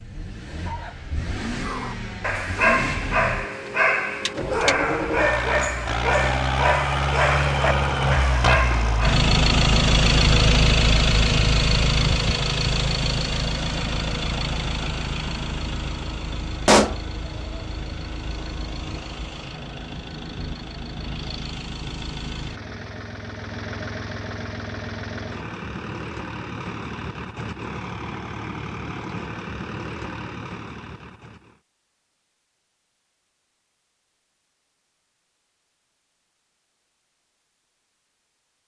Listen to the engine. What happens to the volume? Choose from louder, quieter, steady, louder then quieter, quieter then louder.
louder then quieter.